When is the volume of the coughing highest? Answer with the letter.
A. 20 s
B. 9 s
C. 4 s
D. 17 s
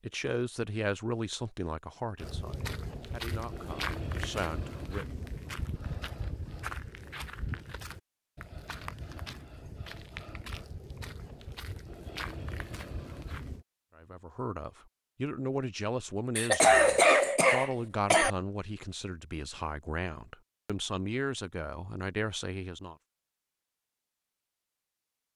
D.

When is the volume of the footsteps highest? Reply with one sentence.
The loudest moment of the footsteps is at 4 seconds.